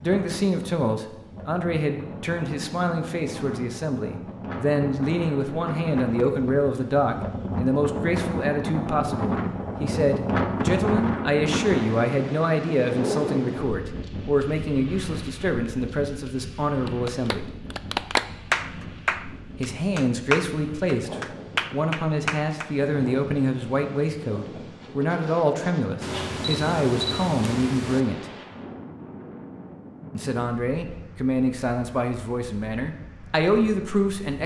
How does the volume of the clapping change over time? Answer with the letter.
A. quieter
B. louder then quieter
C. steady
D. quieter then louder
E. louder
D.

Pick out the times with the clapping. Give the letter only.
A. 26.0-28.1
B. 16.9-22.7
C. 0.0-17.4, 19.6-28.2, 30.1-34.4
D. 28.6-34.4
B.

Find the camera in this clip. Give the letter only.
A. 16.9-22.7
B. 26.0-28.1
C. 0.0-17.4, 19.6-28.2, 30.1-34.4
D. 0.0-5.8
B.